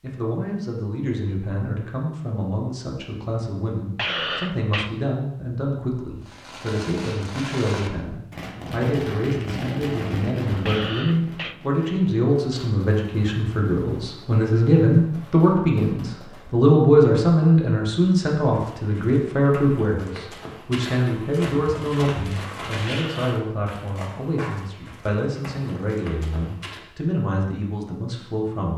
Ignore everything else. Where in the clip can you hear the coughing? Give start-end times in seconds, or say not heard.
4.0-4.9, 10.7-11.6, 22.9-23.4.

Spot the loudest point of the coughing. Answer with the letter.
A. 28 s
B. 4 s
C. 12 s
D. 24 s
B.